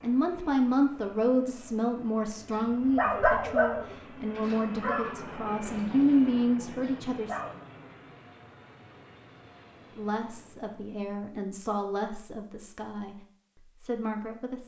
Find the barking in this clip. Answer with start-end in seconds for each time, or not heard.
2.5-7.5.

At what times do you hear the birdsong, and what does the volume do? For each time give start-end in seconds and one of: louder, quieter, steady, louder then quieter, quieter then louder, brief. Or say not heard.
not heard.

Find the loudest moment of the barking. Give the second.
3 s.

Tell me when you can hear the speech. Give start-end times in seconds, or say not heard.
0.0-7.4, 9.9-13.2, 13.8-14.6.